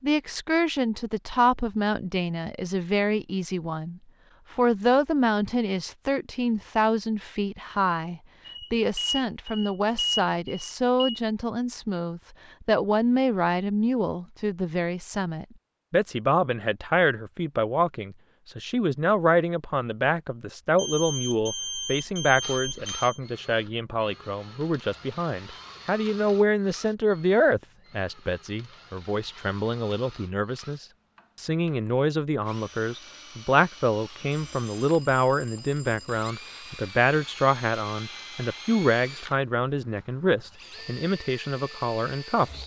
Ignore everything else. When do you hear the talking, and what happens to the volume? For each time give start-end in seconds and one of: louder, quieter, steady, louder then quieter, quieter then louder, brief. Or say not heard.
0.0-42.6 steady.